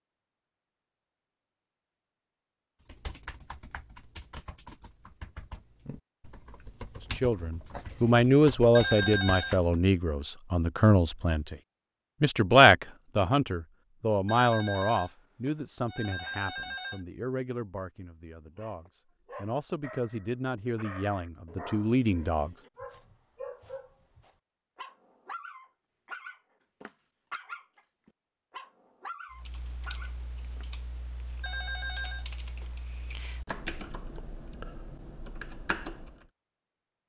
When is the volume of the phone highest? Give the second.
9 s.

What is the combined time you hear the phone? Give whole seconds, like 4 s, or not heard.
5 s.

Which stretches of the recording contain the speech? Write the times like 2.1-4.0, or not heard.
7.2-11.6, 12.2-22.6.